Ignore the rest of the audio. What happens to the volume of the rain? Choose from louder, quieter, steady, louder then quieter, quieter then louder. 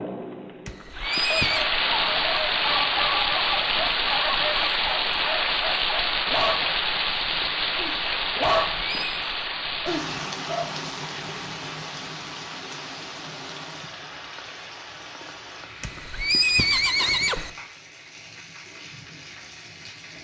quieter.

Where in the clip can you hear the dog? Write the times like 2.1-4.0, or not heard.
1.5-6.8, 7.8-10.7.